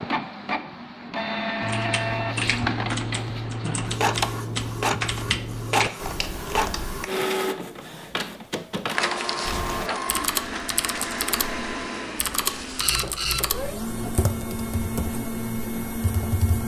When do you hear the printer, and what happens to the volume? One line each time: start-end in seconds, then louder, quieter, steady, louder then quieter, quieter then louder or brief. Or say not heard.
0.0-16.6 steady.